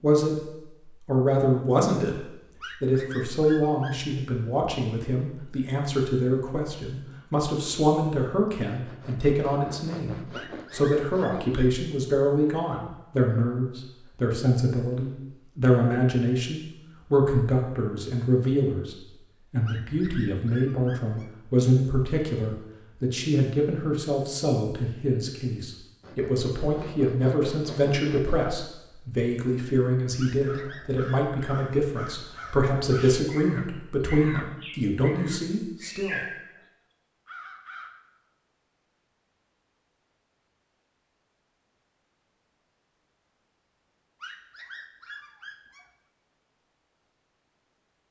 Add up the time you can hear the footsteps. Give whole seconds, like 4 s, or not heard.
not heard.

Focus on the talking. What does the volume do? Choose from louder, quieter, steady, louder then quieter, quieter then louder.
steady.